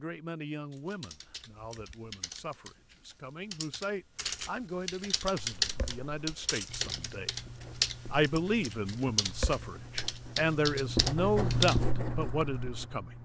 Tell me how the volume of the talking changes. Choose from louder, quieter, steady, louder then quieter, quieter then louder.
louder.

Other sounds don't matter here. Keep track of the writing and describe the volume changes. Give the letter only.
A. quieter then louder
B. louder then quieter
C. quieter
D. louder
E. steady
B.